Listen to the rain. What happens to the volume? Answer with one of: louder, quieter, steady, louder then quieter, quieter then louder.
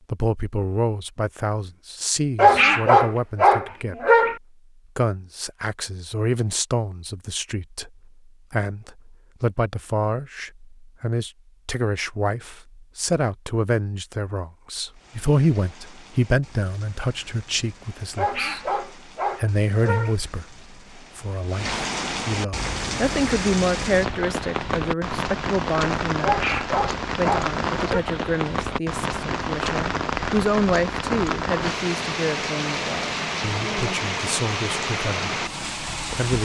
louder.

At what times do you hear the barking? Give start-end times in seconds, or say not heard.
2.4-4.3, 18.1-20.1, 26.2-28.0.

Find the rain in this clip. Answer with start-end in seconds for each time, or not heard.
14.9-36.4.